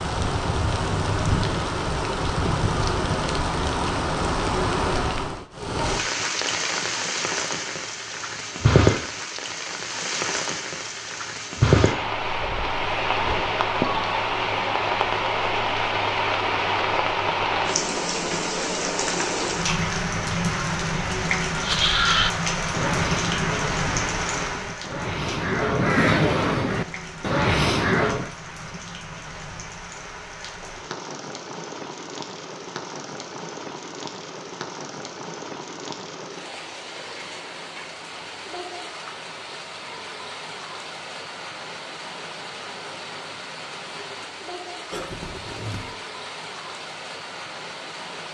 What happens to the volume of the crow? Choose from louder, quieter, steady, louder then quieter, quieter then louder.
quieter then louder.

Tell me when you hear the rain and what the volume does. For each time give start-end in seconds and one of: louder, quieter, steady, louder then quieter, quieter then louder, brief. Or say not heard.
0.0-48.2 quieter.